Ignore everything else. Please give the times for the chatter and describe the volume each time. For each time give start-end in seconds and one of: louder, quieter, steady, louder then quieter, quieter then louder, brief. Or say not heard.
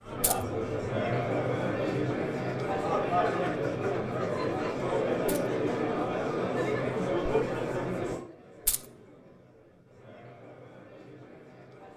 0.0-11.9 quieter.